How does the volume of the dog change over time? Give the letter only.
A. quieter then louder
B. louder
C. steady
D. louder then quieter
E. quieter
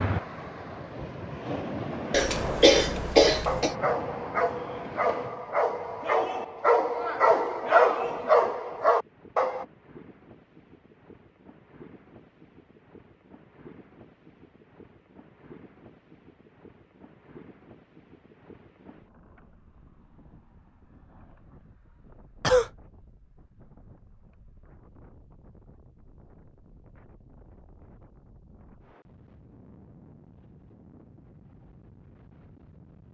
B.